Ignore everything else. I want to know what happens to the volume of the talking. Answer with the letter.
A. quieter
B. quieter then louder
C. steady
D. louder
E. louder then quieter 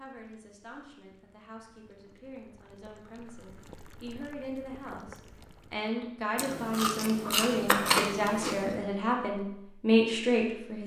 D.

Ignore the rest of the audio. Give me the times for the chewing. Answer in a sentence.
The chewing can be heard from 6.3 to 8.8 s.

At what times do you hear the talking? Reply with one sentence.
The talking can be heard from 0.0 to 10.8 s.